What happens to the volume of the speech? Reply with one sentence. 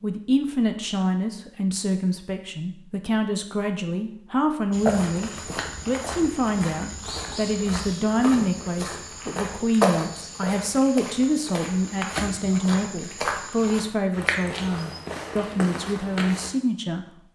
The volume of the speech stays about the same.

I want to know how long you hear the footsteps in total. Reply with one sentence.
You can hear the footsteps for 12 seconds altogether.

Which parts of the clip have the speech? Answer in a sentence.
You can hear the speech from 0.0 to 17.3 s.